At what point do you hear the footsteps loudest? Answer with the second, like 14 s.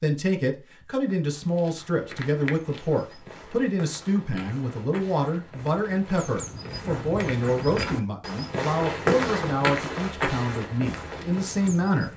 9 s.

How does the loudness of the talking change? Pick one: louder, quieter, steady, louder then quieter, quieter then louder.
steady.